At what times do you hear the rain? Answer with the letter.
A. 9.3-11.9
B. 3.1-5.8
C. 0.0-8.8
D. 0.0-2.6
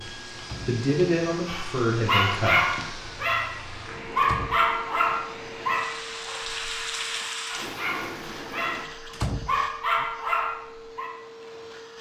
C.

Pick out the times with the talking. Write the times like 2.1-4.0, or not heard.
0.0-2.6.